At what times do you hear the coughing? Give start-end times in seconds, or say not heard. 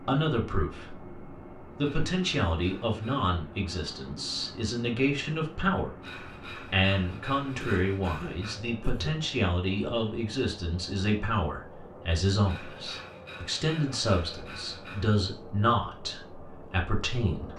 7.6-9.2.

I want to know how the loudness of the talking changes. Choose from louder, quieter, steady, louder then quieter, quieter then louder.
steady.